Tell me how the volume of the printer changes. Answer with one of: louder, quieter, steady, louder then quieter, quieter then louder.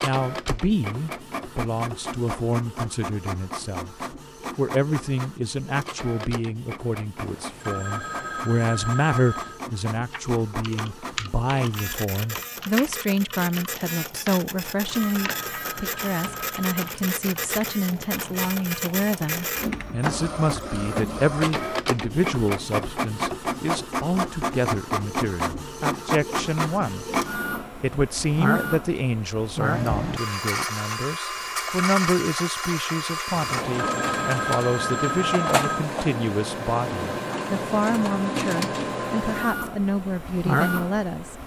louder.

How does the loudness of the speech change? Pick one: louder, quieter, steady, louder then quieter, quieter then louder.
steady.